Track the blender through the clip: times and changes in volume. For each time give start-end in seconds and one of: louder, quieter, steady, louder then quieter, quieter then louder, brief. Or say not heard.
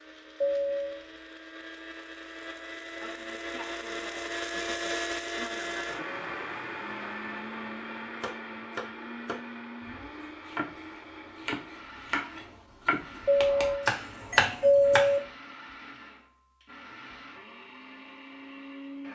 0.0-19.0 louder then quieter.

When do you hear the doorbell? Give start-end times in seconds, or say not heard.
0.4-1.1, 13.2-15.2.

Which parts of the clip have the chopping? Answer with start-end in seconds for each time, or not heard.
8.2-15.2.